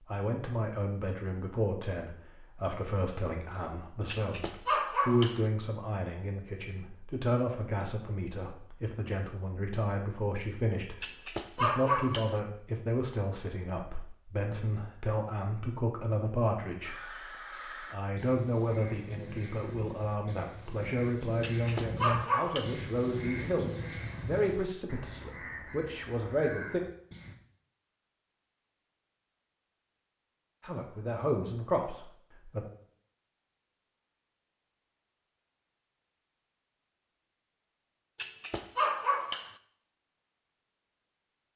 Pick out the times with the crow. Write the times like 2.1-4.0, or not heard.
16.8-27.4.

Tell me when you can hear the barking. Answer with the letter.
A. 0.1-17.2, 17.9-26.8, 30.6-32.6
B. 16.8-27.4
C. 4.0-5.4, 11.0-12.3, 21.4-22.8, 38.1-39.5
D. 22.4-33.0
C.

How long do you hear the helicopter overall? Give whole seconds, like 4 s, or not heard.
not heard.